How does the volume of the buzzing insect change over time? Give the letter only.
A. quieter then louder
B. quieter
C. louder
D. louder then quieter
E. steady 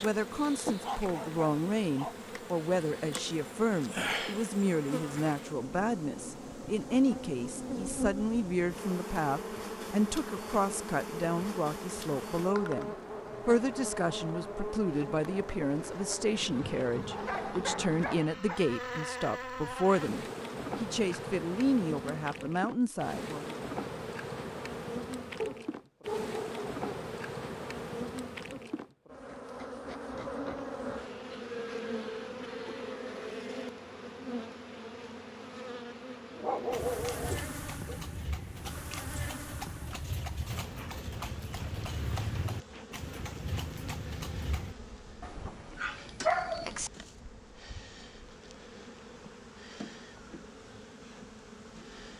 B.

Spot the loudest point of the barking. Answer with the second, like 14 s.
46 s.